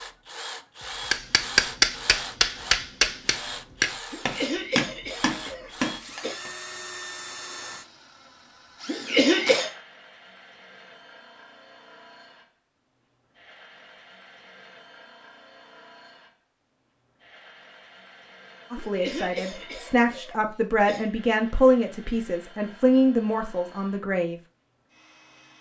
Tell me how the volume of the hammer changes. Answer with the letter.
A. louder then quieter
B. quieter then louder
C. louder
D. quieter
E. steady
D.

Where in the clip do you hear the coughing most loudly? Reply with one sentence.
The volume of the coughing peaks at 9 seconds.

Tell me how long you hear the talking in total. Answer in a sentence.
The talking can be heard for 6 seconds in total.